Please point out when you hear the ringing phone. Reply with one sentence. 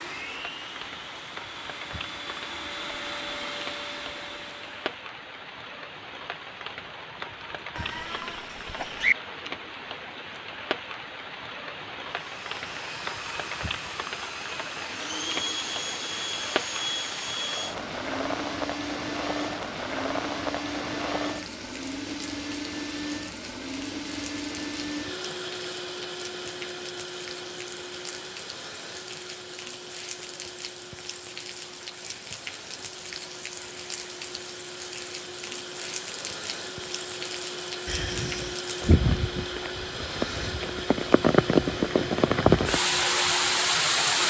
The ringing phone can't be heard in this clip.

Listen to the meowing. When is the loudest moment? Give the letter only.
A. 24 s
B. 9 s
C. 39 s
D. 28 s
B.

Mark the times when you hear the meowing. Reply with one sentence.
You can hear the meowing from 7.8 to 9.2 s and from 37.9 to 38.6 s.